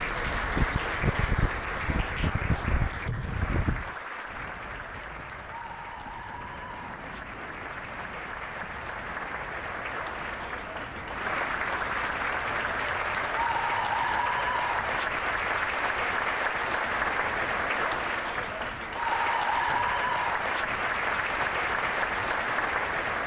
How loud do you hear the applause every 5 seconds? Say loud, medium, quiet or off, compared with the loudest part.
medium, medium, loud, loud, loud.